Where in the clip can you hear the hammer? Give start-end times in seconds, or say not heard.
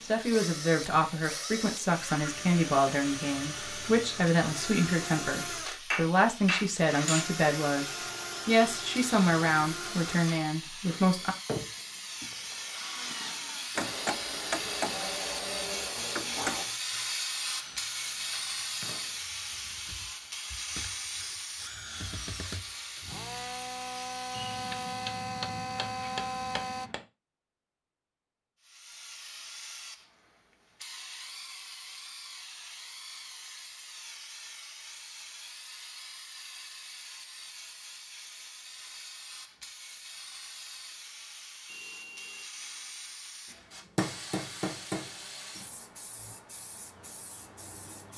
5.9-7.3, 13.8-16.7, 24.3-27.1, 43.5-45.7.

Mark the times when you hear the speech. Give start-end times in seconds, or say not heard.
0.0-11.3.